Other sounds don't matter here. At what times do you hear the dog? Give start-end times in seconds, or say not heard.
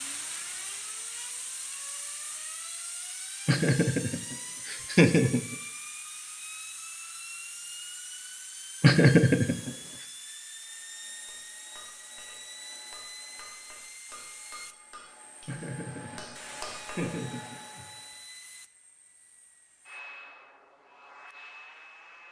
not heard.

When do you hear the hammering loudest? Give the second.
17 s.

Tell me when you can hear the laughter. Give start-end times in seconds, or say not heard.
3.5-5.5, 8.8-9.7, 15.4-17.9.